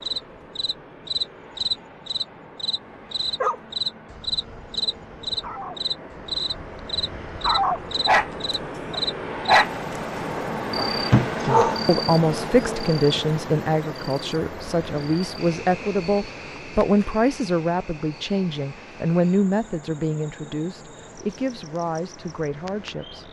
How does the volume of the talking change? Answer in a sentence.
The loudness of the talking goes down.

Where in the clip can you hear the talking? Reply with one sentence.
You can hear the talking from 11.4 to 23.2 s.